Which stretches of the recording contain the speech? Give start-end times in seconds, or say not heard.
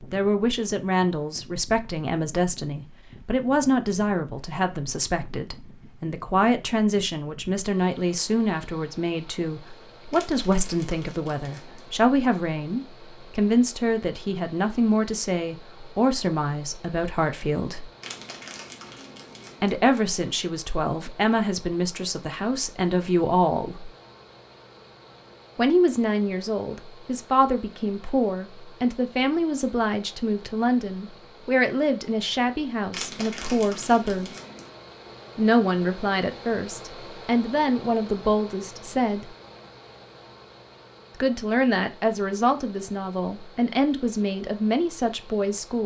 0.0-17.9, 19.6-23.9, 25.6-34.3, 35.4-39.2, 41.2-45.8.